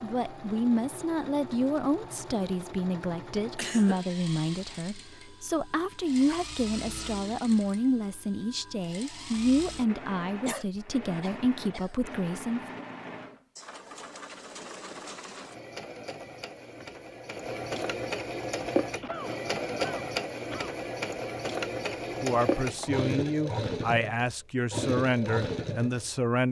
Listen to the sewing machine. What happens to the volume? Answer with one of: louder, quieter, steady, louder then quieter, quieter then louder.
louder.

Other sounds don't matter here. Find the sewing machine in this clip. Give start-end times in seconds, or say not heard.
0.0-26.4.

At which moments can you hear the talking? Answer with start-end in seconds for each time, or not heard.
0.0-12.8, 22.2-26.4.